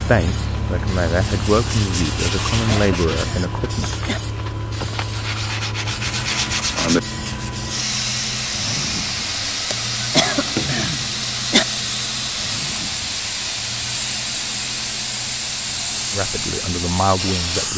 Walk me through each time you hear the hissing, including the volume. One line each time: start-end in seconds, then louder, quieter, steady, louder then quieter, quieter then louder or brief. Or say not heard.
0.0-17.7 louder.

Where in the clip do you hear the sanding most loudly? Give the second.
7 s.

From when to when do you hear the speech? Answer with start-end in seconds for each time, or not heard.
0.0-3.9, 16.1-17.7.